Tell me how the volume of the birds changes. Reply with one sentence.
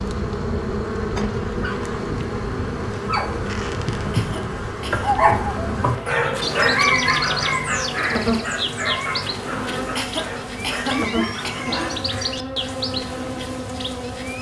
The loudness of the birds stays about the same.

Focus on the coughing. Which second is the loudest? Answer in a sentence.
The volume of the coughing peaks at 11 seconds.